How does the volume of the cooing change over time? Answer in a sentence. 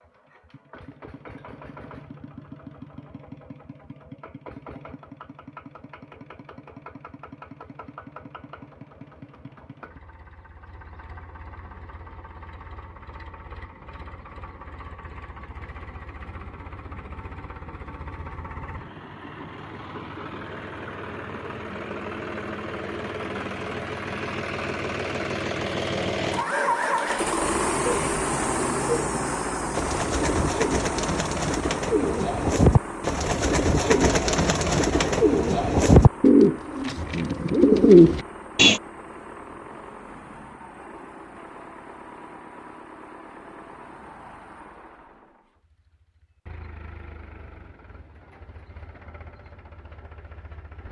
The loudness of the cooing goes up.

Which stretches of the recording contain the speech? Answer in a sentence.
You can't hear the speech here.